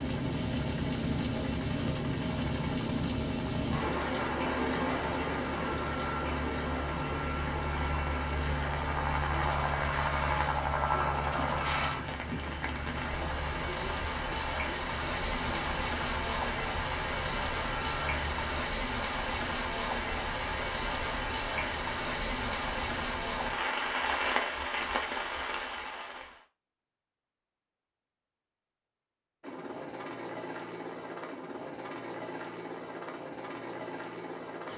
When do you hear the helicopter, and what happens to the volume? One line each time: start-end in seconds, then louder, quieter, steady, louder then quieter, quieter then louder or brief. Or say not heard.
0.0-18.6 louder then quieter
29.4-34.7 steady.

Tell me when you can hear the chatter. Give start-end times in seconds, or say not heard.
not heard.